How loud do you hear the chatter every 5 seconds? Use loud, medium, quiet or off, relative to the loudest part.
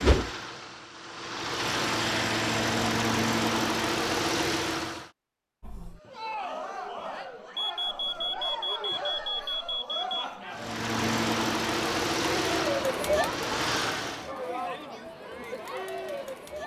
off, medium, loud, medium.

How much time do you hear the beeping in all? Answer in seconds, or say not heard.
3 s.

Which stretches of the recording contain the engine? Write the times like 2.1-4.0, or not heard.
0.0-5.1, 10.5-14.3.